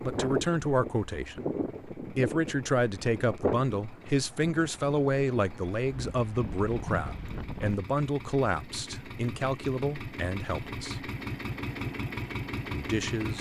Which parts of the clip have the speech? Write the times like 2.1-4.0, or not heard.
0.0-11.1, 12.7-13.3.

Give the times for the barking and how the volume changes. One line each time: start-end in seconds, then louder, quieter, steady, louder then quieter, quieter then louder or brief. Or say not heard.
not heard.